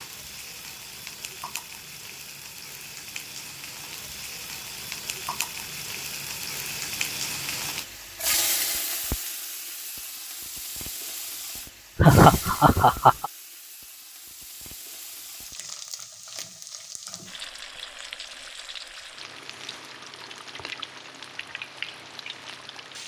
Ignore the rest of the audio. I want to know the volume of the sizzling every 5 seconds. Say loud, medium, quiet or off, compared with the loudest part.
medium, loud, medium, medium, medium.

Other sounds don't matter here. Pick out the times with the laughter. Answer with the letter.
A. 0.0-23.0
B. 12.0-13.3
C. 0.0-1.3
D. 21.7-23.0
B.